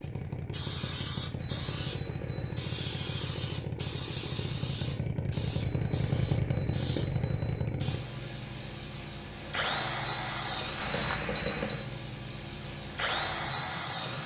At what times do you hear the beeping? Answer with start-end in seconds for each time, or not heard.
1.4-2.6, 5.6-7.7, 10.8-11.8.